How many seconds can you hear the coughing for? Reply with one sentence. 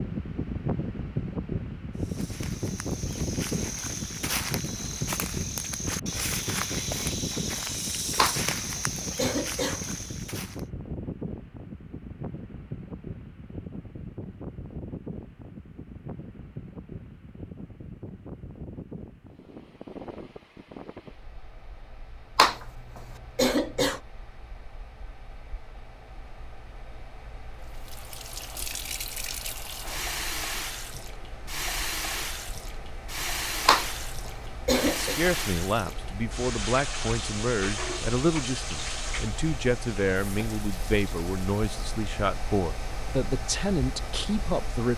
The coughing can be heard for 5 seconds in total.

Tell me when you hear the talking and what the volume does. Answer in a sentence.
The talking can be heard from 35.0 to 44.9 s, at a steady volume.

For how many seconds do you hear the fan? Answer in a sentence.
The fan can be heard for 45 seconds in total.